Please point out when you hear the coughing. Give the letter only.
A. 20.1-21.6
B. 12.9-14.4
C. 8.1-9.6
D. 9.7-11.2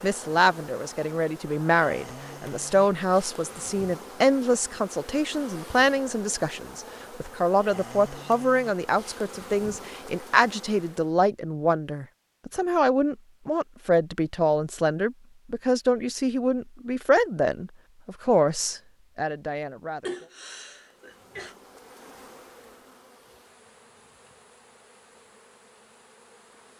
A.